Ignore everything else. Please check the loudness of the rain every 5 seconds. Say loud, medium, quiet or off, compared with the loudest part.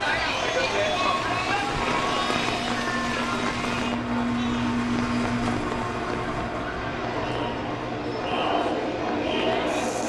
loud, medium.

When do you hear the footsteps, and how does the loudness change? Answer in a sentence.
You can't hear the footsteps here.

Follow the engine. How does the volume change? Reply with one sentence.
The loudness of the engine goes up, then down.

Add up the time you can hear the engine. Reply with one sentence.
The engine can be heard for 10 seconds in total.